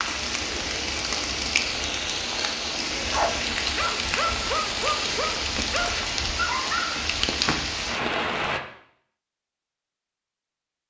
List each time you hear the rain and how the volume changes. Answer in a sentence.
The rain can be heard from 0.0 to 8.6 s, at a steady volume.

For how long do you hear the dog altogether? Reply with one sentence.
You can hear the dog for 4 seconds altogether.